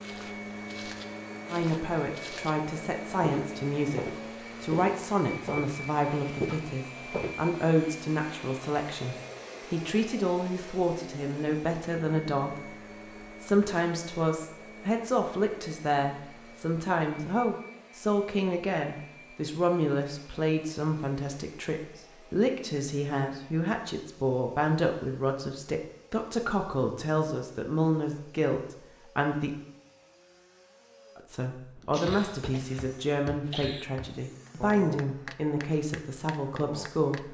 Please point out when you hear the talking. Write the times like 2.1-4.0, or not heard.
1.5-12.8, 13.4-29.5, 31.1-37.2.